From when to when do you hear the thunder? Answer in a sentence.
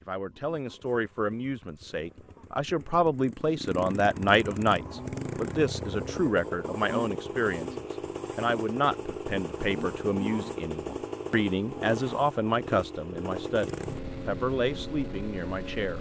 The thunder can't be heard in this clip.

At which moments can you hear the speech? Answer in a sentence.
You can hear the speech from 0.0 to 15.9 s.